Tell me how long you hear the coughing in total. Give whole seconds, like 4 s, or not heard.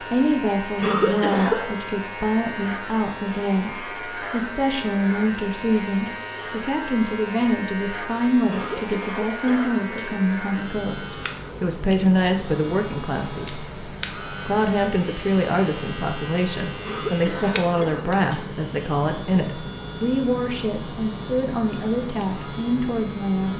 4 s.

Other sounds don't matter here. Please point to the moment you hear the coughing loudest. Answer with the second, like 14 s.
1 s.